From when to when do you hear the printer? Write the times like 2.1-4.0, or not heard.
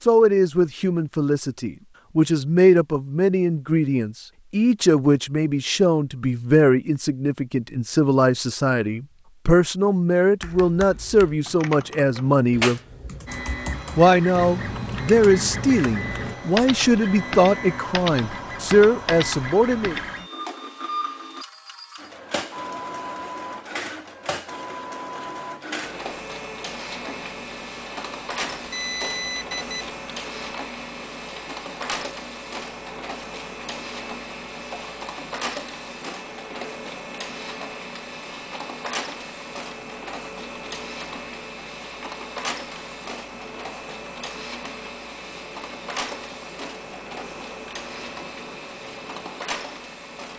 13.2-50.3.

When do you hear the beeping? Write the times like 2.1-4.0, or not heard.
28.6-29.9.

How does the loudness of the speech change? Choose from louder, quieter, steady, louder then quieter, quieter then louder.
steady.